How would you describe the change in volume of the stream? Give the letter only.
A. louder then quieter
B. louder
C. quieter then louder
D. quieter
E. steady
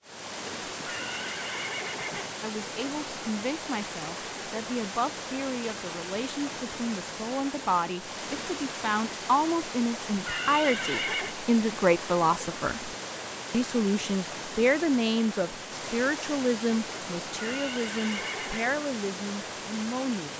E.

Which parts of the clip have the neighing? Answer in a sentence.
The neighing can be heard from 0.8 to 2.4 s, from 10.0 to 11.3 s and from 17.3 to 18.7 s.